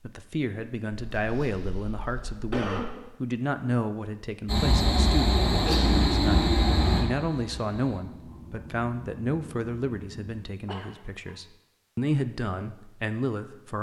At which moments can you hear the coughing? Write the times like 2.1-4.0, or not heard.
1.1-2.9, 5.5-6.0, 10.7-11.3.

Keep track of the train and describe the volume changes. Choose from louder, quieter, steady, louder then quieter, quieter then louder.
quieter.